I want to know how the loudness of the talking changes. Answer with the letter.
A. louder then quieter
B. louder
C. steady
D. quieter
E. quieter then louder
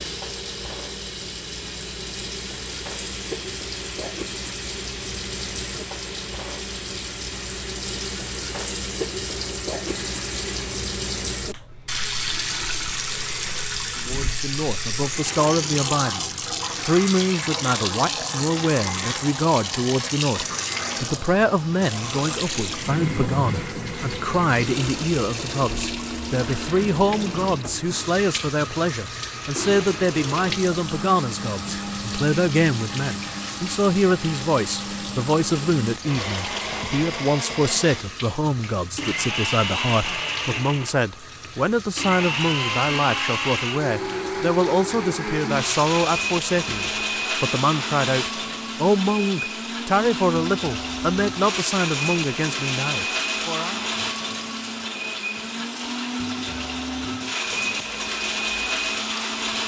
C.